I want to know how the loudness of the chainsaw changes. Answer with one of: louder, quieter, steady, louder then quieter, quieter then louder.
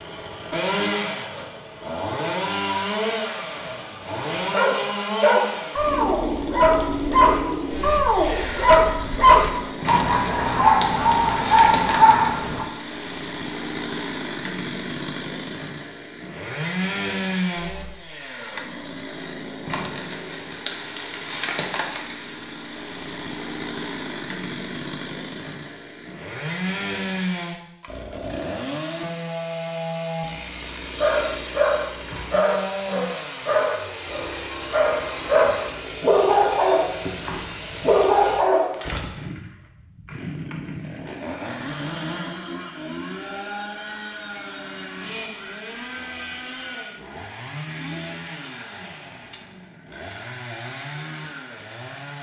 quieter.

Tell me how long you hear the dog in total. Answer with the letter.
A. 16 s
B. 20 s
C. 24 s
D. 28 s
A.